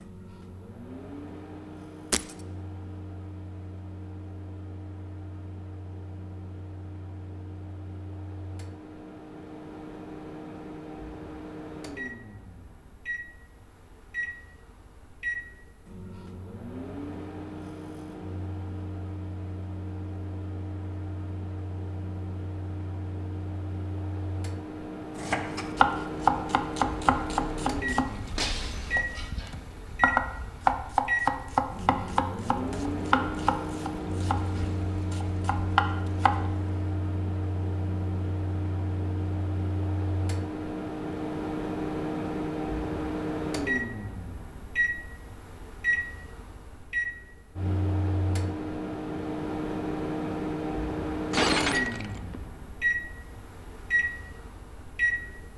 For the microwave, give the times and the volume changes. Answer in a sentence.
You can hear the microwave from 0.0 to 55.5 s, getting louder.